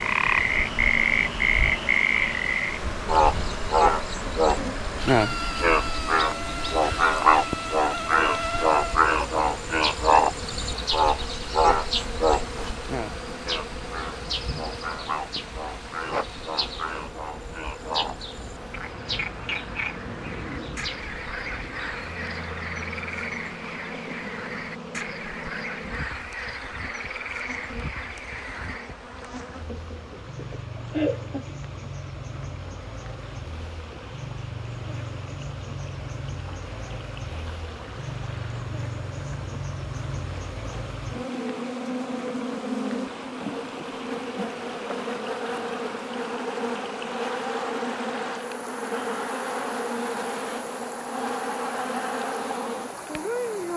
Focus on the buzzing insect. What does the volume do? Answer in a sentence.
The volume of the buzzing insect goes down, then up.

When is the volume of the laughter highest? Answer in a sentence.
The loudest moment of the laughter is at 31 seconds.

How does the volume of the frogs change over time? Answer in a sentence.
The loudness of the frogs goes down.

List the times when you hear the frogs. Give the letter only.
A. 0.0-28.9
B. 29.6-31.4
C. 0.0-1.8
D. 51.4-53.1
A.